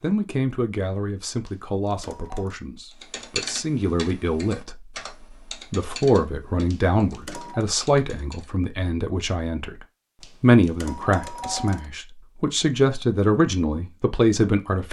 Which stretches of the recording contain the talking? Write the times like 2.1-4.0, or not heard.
0.0-4.8, 5.7-9.8, 10.4-14.8.